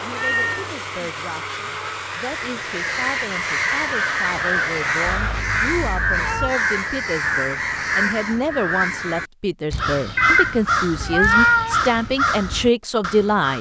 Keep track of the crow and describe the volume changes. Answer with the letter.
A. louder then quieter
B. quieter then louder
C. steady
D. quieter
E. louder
C.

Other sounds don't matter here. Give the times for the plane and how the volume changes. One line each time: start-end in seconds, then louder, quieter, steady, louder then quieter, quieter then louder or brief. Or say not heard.
0.0-5.5 steady.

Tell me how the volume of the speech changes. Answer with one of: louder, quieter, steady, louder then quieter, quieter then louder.
louder.